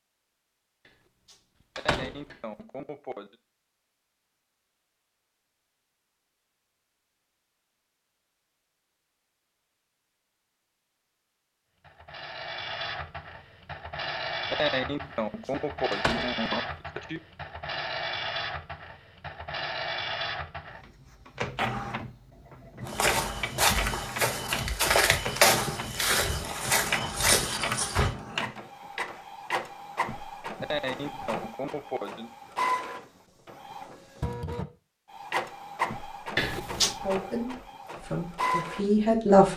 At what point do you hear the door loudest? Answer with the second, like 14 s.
37 s.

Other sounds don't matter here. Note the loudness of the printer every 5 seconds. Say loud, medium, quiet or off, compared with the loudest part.
off, off, loud, loud, loud, loud, loud, loud.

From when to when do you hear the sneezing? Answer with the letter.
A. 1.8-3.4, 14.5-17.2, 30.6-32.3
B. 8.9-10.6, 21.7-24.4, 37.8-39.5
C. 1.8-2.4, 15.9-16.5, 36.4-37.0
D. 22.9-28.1
A.